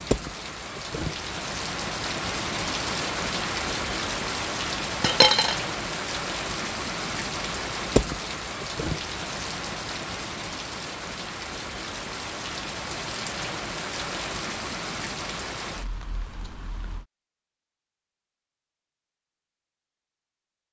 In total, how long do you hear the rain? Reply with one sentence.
The rain can be heard for 17 seconds in total.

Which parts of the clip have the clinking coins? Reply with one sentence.
The clinking coins can be heard from 5.0 to 5.5 s.